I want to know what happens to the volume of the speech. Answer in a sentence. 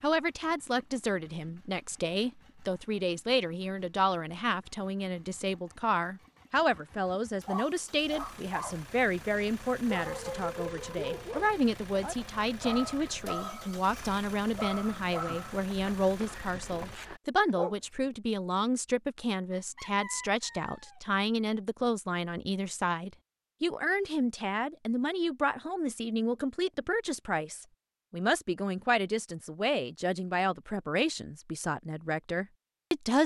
The loudness of the speech stays about the same.